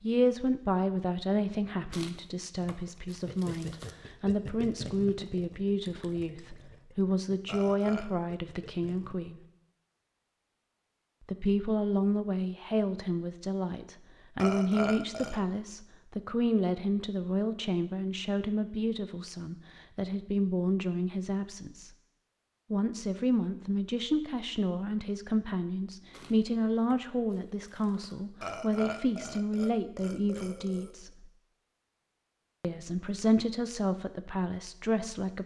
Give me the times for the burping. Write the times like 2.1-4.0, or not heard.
7.5-8.1, 14.3-15.4, 28.4-30.9.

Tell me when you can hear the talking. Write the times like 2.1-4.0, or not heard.
0.0-9.4, 11.2-21.9, 22.7-31.2, 32.6-35.4.